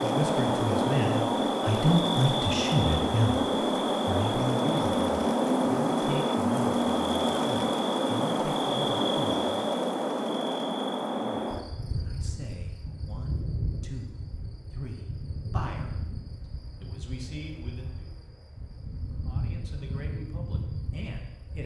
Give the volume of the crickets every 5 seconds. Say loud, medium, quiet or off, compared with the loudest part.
loud, loud, medium, quiet, quiet.